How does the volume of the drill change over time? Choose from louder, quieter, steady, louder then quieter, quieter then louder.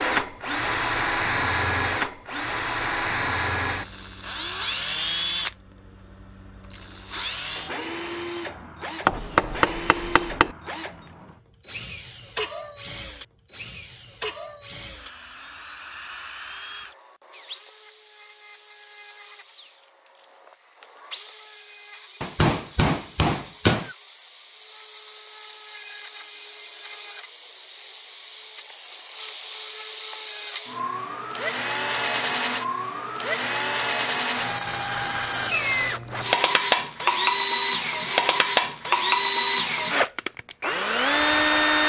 quieter then louder.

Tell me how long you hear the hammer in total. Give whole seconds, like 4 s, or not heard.
3 s.